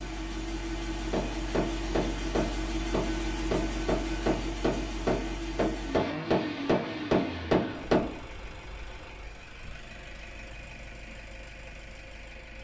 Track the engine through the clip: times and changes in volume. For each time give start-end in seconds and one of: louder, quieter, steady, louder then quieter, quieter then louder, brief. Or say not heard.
0.0-12.5 quieter.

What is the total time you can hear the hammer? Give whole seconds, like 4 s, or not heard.
7 s.